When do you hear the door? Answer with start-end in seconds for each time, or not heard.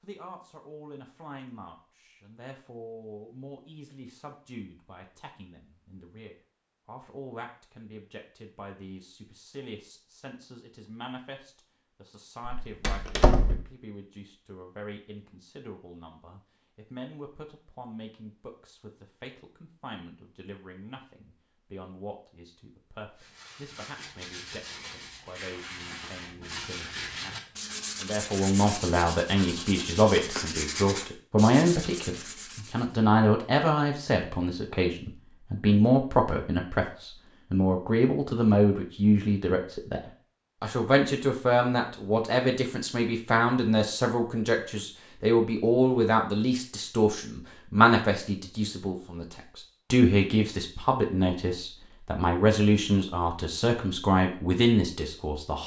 12.4-13.7.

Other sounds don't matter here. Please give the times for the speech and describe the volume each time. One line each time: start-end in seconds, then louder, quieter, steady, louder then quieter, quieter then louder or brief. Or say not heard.
0.0-55.6 louder.